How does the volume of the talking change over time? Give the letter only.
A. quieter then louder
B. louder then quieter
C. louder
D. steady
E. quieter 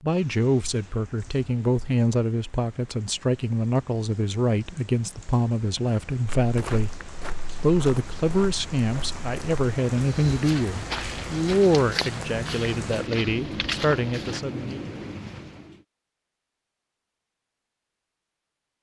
D.